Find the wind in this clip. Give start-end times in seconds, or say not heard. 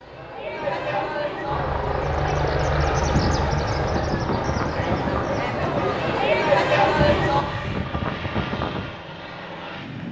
3.0-9.8.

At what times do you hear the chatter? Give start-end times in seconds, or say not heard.
0.0-7.5.